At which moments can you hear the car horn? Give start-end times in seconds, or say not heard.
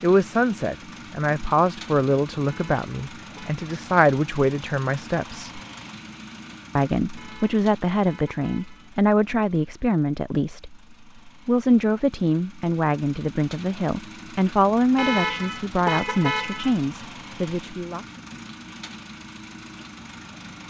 2.5-3.6, 7.2-8.9, 14.9-16.8.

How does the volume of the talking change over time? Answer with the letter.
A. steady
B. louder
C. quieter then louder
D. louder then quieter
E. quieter
A.